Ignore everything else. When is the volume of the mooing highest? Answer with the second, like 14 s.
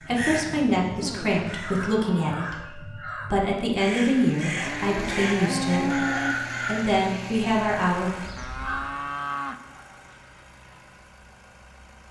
6 s.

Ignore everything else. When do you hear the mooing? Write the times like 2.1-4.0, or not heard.
1.0-2.4, 4.5-6.3, 8.3-9.9.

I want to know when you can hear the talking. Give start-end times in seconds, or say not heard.
0.1-8.1.